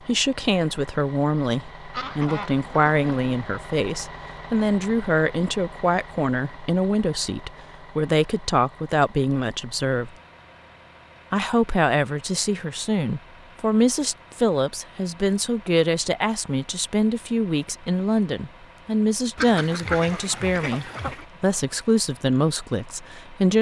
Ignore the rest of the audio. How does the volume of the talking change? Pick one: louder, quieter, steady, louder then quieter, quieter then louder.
steady.